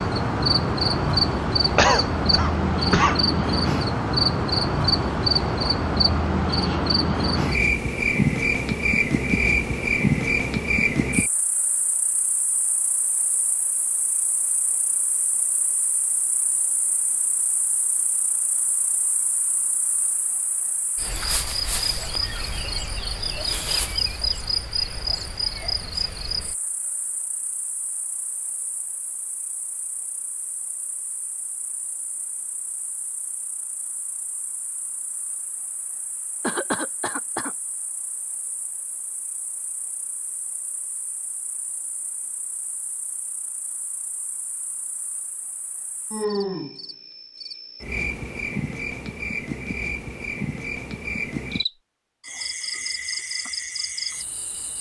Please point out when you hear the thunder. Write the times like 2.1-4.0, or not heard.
not heard.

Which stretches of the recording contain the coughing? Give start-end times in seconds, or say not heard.
1.8-3.1, 36.4-37.5.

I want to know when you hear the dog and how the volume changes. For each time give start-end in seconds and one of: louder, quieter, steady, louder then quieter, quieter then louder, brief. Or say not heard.
not heard.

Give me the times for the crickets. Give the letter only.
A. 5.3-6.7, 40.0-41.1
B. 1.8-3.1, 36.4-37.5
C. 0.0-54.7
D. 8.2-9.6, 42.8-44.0
C.